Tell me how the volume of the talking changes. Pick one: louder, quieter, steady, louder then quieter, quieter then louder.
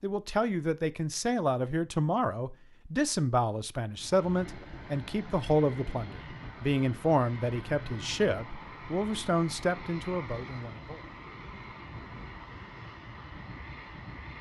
steady.